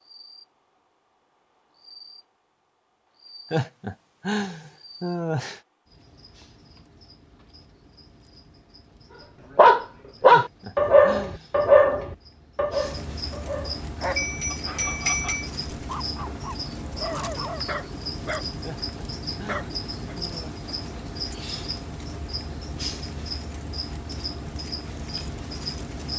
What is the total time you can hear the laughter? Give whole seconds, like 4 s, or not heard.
5 s.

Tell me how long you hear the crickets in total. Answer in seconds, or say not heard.
26 s.